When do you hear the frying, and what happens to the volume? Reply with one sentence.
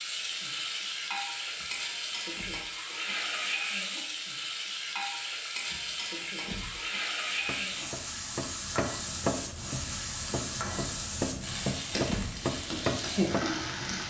You can hear the frying from 0.0 to 14.0 s, at a steady volume.